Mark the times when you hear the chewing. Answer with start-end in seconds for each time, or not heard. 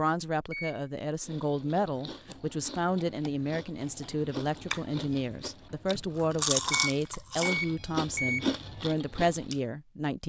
1.2-9.6.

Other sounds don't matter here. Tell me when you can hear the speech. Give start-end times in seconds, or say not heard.
0.0-10.2.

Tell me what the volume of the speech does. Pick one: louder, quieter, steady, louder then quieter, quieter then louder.
steady.